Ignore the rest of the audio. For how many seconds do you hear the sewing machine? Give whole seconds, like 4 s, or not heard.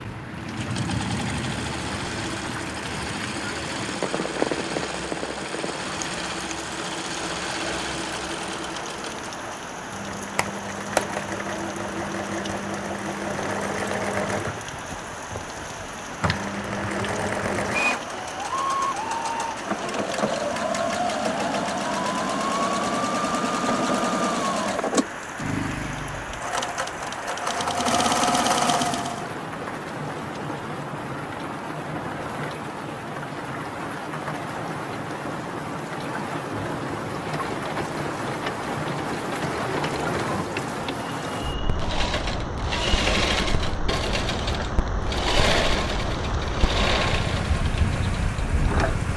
41 s.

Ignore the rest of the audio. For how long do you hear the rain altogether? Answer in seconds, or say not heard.
49 s.